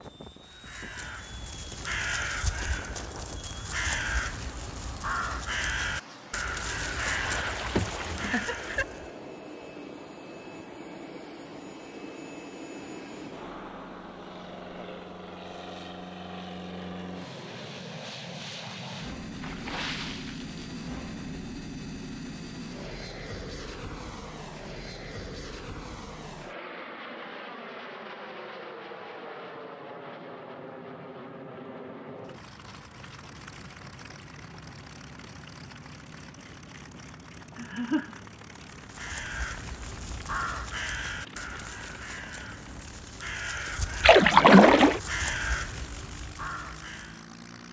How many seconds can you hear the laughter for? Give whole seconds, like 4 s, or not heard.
2 s.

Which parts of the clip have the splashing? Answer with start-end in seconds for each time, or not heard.
6.8-8.8, 19.3-20.8, 44.0-45.0.